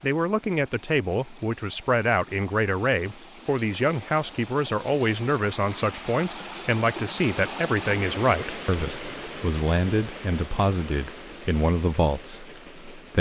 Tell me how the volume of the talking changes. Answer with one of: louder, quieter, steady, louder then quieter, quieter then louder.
steady.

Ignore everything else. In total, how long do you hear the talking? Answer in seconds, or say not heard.
13 s.